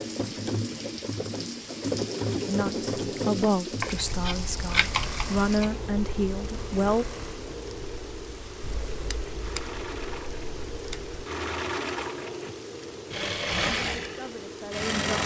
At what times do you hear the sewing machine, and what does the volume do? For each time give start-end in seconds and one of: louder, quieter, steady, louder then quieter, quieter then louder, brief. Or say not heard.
0.0-15.2 quieter then louder.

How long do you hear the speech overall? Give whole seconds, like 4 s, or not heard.
6 s.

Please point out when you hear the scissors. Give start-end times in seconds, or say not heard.
3.8-5.8, 8.8-11.2.